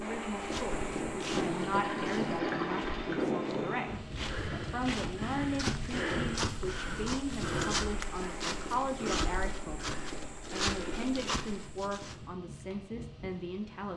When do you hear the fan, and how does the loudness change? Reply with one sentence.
You can hear the fan from 0.0 to 13.9 s, getting quieter.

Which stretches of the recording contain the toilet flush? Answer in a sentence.
You can hear the toilet flush from 1.4 to 3.3 s.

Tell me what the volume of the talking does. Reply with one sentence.
The volume of the talking stays about the same.